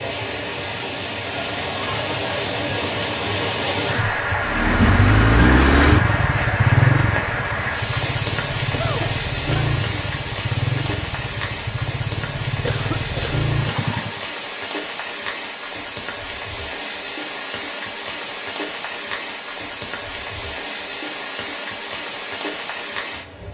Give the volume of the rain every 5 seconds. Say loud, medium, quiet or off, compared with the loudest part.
loud, loud, medium, medium, medium.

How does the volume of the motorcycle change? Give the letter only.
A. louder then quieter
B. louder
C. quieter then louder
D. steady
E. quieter
E.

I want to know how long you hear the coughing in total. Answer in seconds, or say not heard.
2 s.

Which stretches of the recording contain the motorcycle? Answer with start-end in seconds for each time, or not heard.
4.4-14.2.